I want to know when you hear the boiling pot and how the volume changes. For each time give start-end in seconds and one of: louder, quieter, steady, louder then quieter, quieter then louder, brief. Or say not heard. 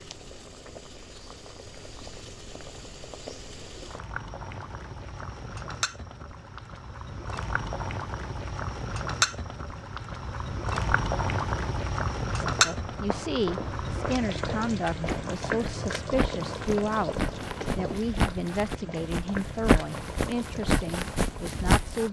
0.0-22.0 louder then quieter.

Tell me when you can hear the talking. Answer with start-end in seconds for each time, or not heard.
12.3-22.0.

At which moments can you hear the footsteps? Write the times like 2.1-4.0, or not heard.
12.6-22.0.